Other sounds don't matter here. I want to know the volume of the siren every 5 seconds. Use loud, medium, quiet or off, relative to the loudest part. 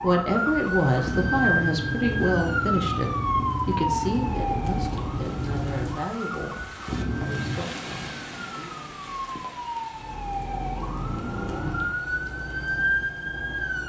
loud, medium, loud.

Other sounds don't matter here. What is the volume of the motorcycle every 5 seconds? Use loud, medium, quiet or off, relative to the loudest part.
loud, loud, off.